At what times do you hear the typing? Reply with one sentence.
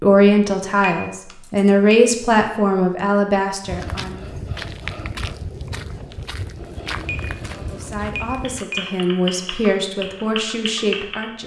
You can hear the typing from 8.4 to 11.4 s.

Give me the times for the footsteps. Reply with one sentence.
The footsteps can be heard from 3.6 to 8.7 s.